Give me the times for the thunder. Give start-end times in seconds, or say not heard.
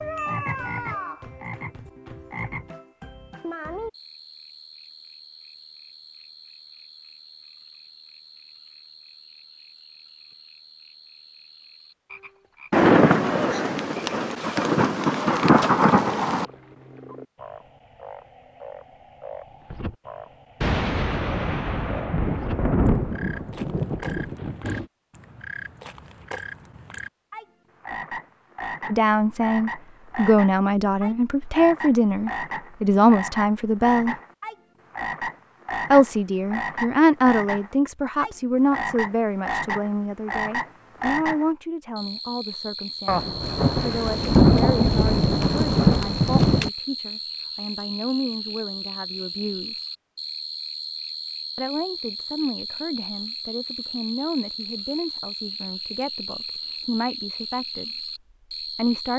12.7-16.4, 20.6-24.9, 43.0-46.7.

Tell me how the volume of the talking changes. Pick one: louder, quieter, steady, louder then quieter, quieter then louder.
quieter.